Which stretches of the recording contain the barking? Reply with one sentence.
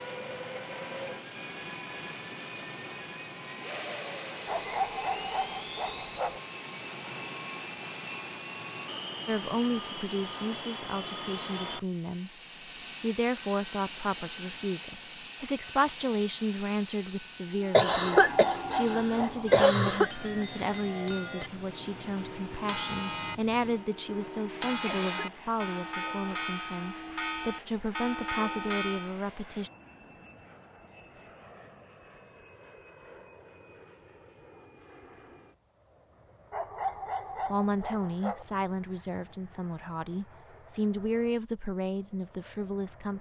You can hear the barking from 4.5 to 6.4 s, from 17.9 to 19.6 s and from 36.5 to 38.5 s.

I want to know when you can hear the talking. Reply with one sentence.
The talking can be heard from 9.2 to 12.3 s, from 13.0 to 29.7 s and from 37.5 to 43.1 s.